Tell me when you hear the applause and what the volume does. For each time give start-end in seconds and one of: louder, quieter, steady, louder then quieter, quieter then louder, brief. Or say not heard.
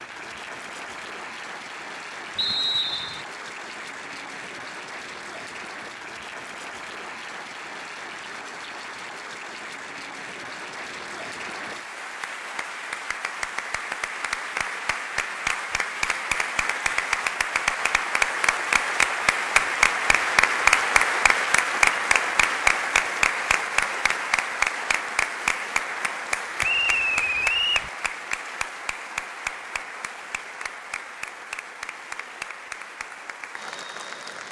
0.0-34.4 louder then quieter.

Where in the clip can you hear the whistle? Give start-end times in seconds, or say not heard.
2.4-3.2, 26.6-27.9.